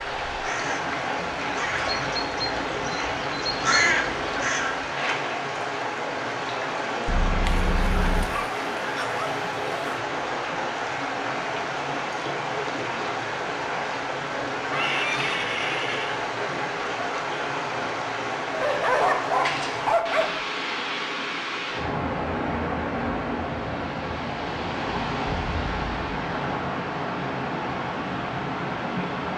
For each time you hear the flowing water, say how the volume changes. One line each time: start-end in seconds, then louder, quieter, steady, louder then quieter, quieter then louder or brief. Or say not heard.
0.0-29.3 steady.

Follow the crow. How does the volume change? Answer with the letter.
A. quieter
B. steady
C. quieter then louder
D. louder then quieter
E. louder
E.